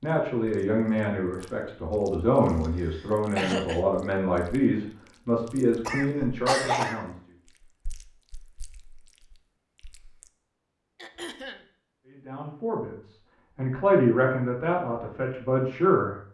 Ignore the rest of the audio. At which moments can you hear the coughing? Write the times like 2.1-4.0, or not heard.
2.6-3.8, 5.8-7.0, 10.9-11.7.